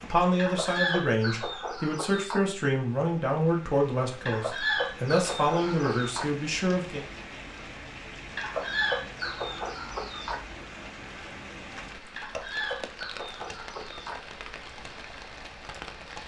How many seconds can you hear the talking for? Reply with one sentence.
You can hear the talking for 7 seconds altogether.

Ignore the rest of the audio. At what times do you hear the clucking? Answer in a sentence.
The clucking can be heard from 0.3 to 2.4 s, from 4.2 to 6.2 s, from 8.3 to 10.4 s and from 12.2 to 14.2 s.